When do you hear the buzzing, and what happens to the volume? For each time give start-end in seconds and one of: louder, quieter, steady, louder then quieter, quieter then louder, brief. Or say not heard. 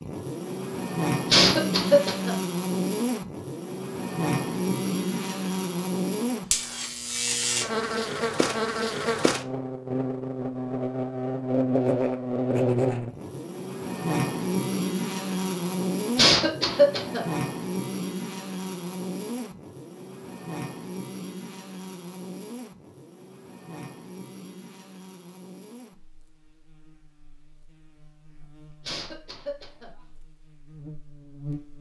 0.0-31.7 quieter.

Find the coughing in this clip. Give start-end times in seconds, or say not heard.
1.3-2.4, 16.1-17.4, 28.8-29.9.